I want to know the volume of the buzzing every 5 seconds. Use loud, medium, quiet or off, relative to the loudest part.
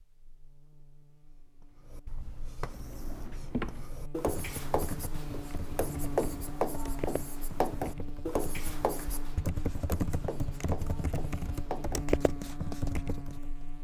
medium, loud, loud.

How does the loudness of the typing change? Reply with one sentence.
The volume of the typing goes down, then up.